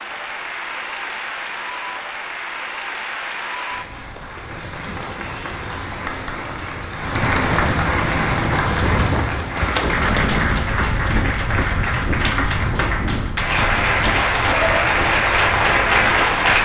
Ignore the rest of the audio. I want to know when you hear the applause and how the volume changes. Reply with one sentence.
The applause can be heard from 0.0 to 16.6 s, getting louder.